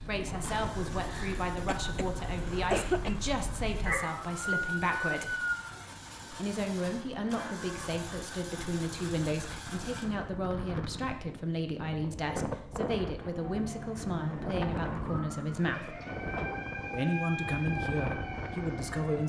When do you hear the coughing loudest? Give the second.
3 s.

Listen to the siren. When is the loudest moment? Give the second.
5 s.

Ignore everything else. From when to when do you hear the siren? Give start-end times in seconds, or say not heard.
0.0-5.8, 13.2-19.2.